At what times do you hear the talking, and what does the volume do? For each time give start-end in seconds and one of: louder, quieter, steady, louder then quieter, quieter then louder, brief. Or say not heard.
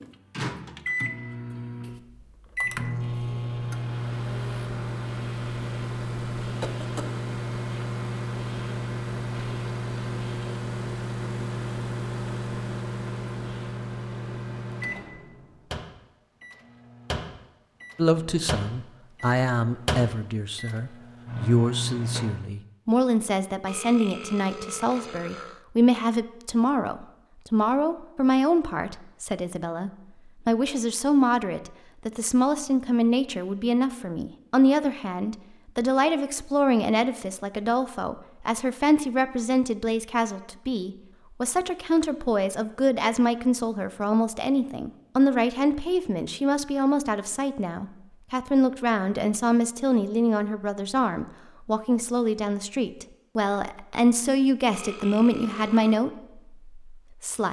17.9-57.4 steady.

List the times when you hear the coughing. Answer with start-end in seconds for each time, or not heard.
6.6-7.2.